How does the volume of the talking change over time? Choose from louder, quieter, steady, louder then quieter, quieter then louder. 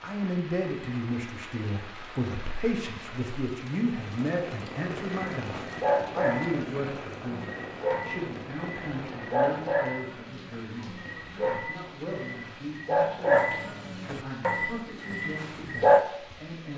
quieter.